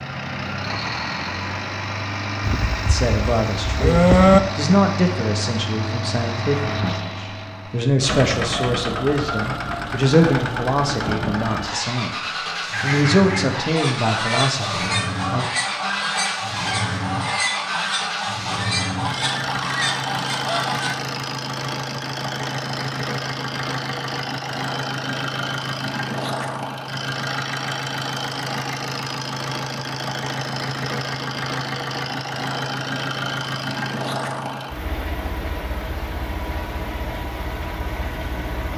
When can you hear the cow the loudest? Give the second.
4 s.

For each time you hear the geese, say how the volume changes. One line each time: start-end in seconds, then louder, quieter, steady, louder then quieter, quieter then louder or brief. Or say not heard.
12.7-21.0 steady.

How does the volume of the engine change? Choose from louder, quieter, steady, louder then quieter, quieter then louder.
steady.